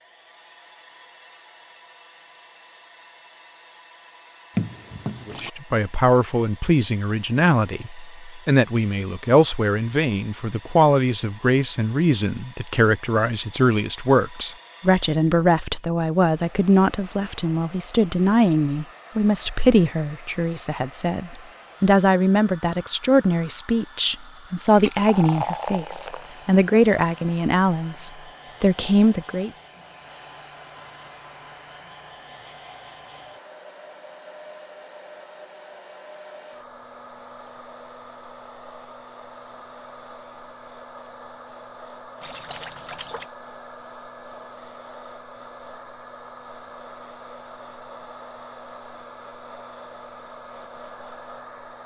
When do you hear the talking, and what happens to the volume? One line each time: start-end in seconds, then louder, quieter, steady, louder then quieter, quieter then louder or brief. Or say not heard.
5.2-29.5 steady.